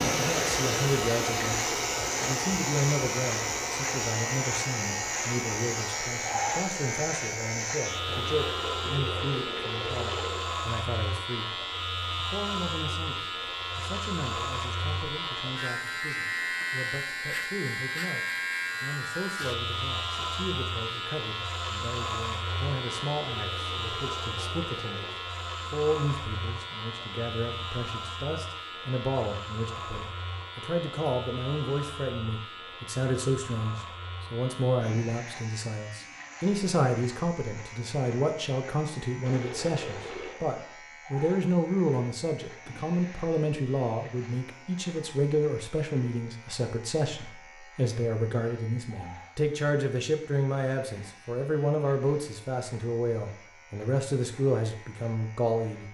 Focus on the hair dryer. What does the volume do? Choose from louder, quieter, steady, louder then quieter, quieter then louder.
quieter.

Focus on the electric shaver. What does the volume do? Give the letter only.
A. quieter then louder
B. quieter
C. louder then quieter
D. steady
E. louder
B.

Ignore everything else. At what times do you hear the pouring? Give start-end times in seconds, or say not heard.
8.1-10.6, 22.4-25.1, 39.2-40.4.